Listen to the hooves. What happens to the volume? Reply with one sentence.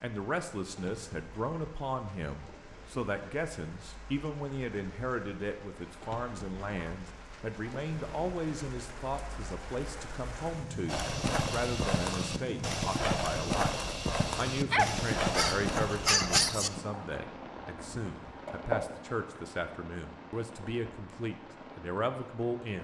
The volume of the hooves goes down.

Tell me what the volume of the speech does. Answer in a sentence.
The loudness of the speech stays about the same.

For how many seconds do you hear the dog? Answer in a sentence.
The dog can be heard for 2 seconds in total.